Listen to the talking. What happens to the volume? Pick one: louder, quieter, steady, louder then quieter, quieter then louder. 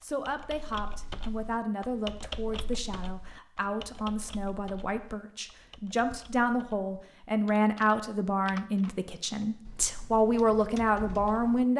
louder.